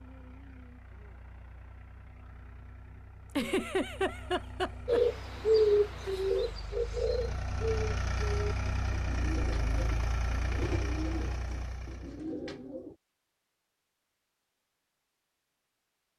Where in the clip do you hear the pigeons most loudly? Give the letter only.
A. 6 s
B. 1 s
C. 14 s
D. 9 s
A.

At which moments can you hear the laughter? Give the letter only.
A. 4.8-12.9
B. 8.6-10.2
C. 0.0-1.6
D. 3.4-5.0
D.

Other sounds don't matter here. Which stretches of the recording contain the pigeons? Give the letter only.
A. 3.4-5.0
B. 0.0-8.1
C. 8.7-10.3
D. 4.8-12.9
D.